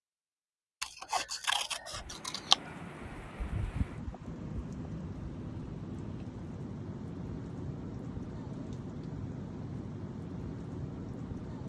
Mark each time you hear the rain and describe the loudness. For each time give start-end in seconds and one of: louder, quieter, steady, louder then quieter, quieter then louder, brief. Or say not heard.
1.9-11.6 steady.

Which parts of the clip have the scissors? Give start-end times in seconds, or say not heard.
0.8-2.6.